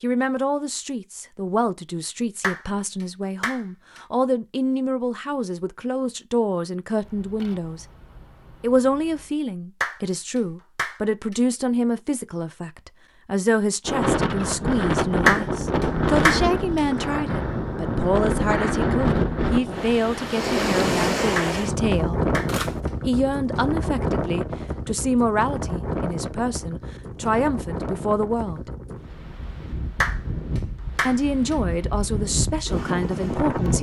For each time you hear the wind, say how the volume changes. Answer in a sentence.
The wind can be heard from 13.8 to 33.7 s, getting quieter.